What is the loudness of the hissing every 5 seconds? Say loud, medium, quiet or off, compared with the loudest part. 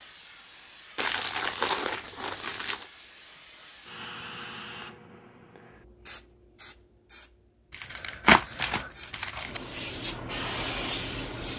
medium, quiet, loud.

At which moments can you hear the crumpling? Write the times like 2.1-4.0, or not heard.
0.9-2.9, 7.7-9.6.